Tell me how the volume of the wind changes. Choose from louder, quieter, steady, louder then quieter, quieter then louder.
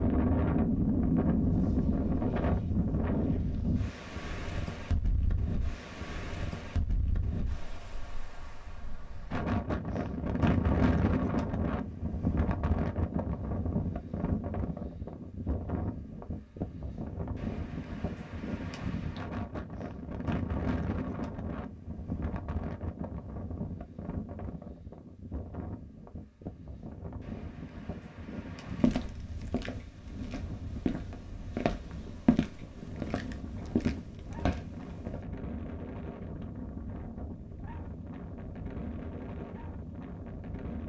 quieter.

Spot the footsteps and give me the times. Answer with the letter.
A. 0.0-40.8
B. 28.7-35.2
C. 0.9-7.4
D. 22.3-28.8
B.